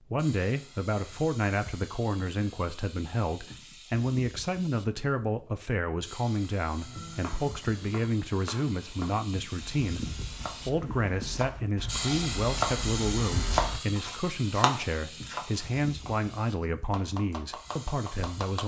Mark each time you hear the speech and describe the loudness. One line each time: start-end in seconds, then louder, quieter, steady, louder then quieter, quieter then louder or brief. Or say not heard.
0.1-18.6 steady.